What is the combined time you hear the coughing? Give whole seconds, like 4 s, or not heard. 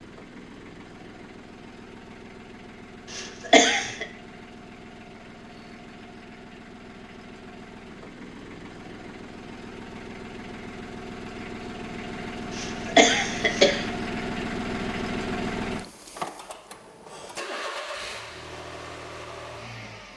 2 s.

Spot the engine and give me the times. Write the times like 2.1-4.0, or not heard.
0.0-20.1.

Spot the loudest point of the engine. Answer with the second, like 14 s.
15 s.